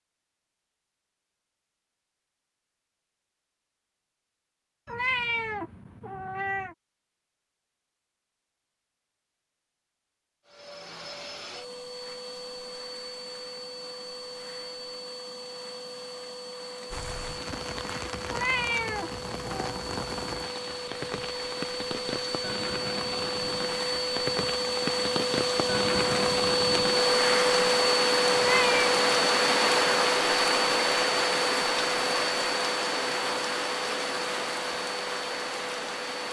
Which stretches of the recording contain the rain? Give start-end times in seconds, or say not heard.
16.9-36.2.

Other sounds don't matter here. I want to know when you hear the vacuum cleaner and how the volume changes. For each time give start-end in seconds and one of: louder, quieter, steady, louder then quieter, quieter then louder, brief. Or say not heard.
10.4-36.2 louder then quieter.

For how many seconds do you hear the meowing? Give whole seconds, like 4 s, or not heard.
4 s.